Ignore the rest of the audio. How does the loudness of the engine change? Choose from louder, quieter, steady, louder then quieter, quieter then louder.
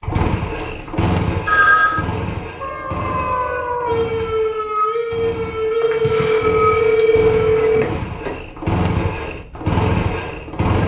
quieter then louder.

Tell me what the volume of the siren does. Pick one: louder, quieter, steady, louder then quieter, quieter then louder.
steady.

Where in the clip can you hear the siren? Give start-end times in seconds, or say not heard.
2.6-7.7.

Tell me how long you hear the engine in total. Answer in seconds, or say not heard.
11 s.